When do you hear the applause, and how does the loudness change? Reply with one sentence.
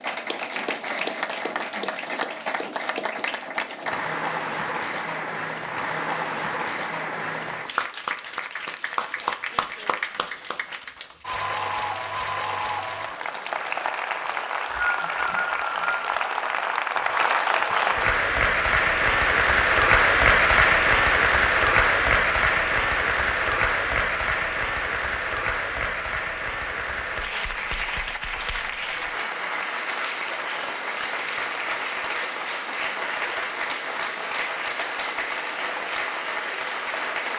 The applause can be heard from 0.0 to 37.3 s, getting louder then quieter.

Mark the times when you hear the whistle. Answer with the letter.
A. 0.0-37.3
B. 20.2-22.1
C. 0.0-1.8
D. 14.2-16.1
D.